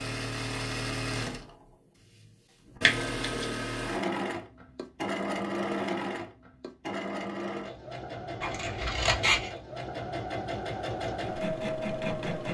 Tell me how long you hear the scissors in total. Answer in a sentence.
The scissors can be heard for 2 seconds in total.